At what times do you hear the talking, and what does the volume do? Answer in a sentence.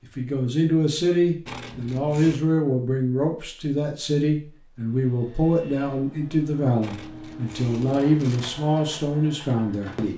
The talking can be heard from 0.0 to 10.1 s, at a steady volume.